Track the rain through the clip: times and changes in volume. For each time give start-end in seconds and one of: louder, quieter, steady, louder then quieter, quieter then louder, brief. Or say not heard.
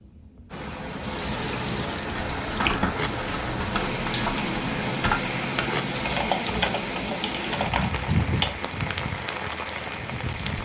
0.0-10.6 steady.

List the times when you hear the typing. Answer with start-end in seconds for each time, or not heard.
2.0-8.6.